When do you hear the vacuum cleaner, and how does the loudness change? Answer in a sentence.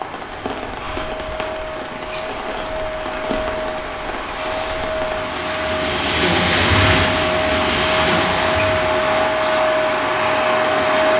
You can hear the vacuum cleaner from 0.0 to 11.1 s, getting louder.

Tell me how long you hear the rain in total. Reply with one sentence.
The rain can be heard for 9 seconds in total.